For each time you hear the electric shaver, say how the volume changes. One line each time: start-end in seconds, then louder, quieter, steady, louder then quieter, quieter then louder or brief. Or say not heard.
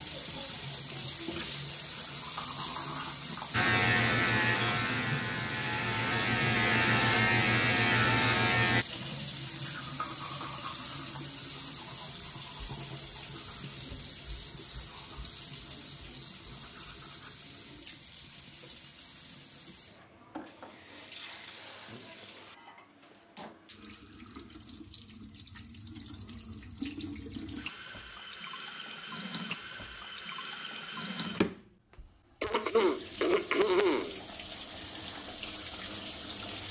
3.5-8.8 quieter then louder.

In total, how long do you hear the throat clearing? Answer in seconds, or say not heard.
2 s.